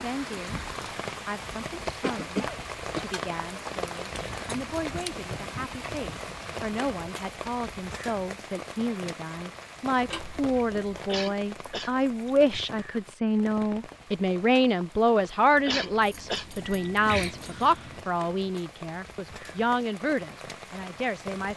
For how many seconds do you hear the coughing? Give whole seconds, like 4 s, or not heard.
5 s.